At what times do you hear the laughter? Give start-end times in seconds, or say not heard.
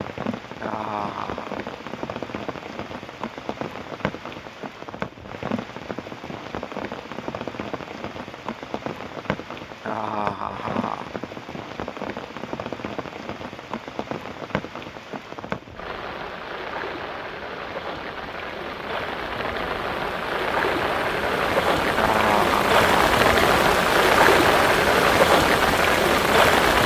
0.6-1.6, 9.8-11.1, 21.9-23.1.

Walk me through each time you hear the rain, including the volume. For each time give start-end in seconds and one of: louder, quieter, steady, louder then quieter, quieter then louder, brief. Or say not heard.
0.0-26.8 louder.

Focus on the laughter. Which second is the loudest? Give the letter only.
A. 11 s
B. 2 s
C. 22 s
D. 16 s
C.